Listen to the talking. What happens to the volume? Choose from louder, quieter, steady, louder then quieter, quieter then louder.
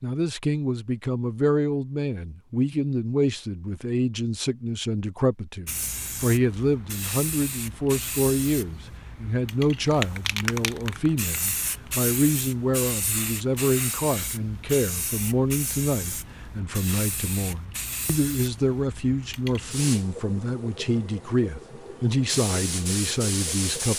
steady.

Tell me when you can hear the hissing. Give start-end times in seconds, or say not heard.
5.7-23.9.